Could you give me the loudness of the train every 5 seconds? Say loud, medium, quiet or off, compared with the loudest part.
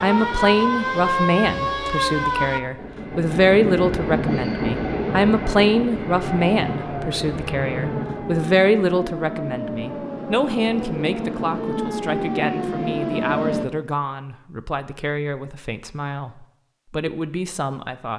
loud, loud, off, off.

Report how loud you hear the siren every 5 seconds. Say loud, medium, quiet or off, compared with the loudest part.
loud, medium, loud, off.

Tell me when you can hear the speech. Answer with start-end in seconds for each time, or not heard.
0.0-18.1.